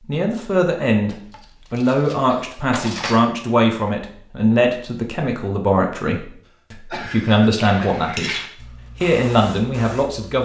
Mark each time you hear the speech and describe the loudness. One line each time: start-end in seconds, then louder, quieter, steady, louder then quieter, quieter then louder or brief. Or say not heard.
0.0-10.4 steady.